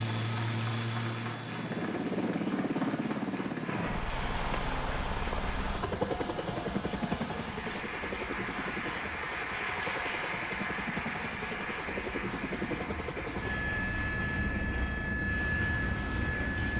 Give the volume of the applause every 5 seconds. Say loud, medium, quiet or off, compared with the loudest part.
medium, loud, loud, medium.